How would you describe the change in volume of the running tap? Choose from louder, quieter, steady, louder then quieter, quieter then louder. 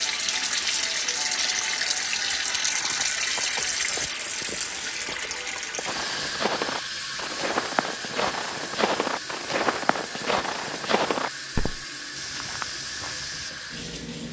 quieter.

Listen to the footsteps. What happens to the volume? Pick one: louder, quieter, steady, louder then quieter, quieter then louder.
quieter.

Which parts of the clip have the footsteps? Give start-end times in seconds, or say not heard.
5.8-13.5.